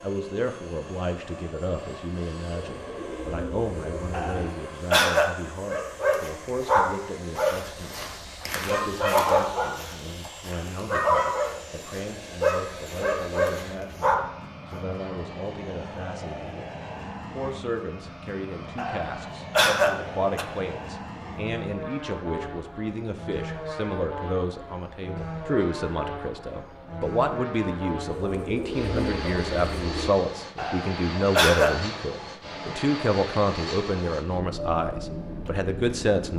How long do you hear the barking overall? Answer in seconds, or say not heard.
9 s.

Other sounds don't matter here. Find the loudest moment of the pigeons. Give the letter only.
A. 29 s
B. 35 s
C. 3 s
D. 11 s
A.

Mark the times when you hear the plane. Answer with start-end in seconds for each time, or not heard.
0.0-36.3.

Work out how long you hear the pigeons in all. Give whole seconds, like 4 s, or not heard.
4 s.